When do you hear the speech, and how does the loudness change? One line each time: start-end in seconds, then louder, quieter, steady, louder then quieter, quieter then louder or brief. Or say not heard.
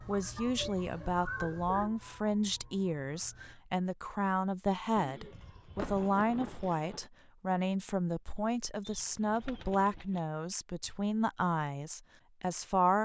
0.1-13.0 steady.